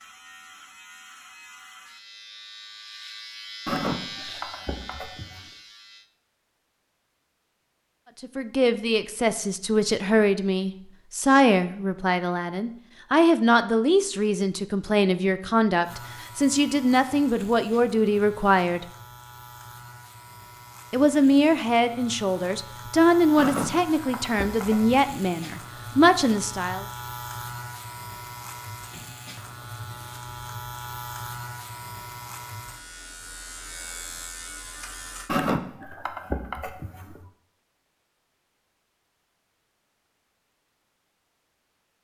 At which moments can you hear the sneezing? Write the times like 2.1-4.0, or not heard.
3.6-5.4, 23.4-25.1, 35.2-37.2.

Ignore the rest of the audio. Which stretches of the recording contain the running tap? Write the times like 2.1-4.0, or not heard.
not heard.